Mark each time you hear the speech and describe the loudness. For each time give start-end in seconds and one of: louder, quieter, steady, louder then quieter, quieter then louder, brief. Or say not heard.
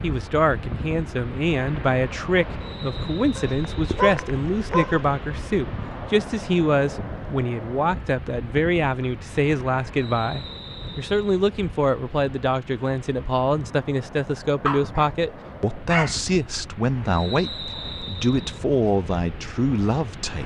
0.0-20.4 steady.